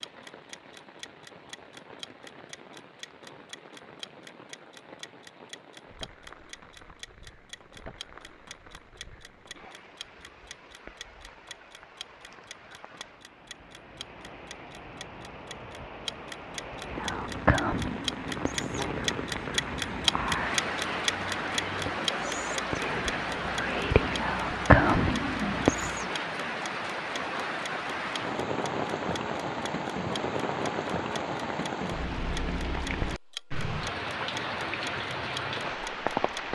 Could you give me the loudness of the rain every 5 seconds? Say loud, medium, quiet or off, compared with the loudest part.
quiet, quiet, quiet, medium, loud, loud, loud, loud.